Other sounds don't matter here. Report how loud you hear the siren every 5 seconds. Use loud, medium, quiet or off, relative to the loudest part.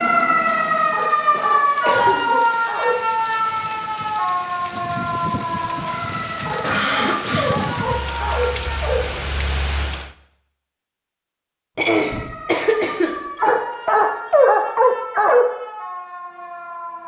loud, medium, quiet, quiet.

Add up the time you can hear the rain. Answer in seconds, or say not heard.
10 s.